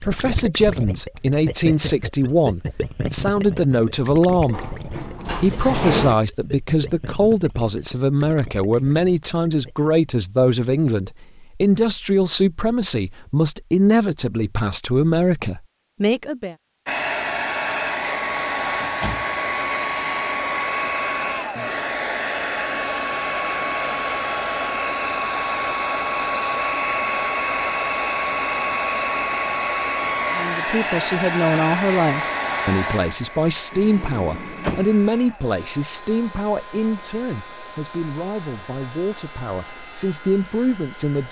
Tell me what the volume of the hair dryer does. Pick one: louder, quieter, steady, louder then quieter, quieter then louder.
quieter.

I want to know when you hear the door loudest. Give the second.
6 s.